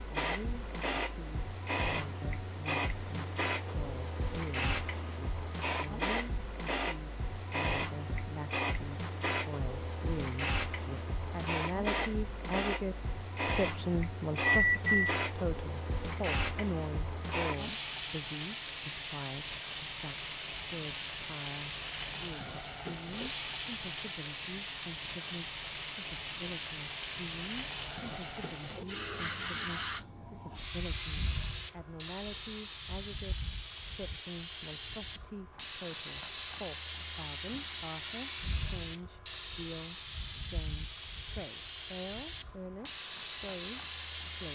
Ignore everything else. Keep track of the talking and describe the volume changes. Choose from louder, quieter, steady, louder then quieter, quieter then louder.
louder then quieter.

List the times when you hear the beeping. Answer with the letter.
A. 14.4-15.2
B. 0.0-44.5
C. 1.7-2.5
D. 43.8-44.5
A.